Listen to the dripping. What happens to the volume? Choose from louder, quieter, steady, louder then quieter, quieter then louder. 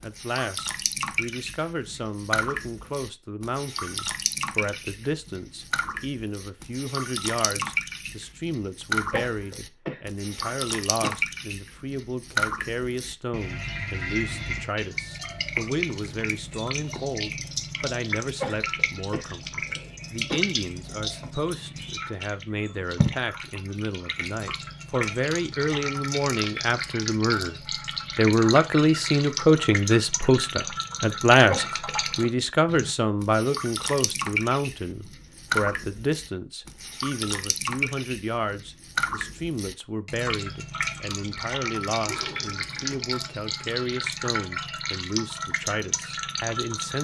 steady.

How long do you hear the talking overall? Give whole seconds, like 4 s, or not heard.
46 s.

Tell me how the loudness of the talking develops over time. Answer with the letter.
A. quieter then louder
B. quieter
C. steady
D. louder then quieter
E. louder
D.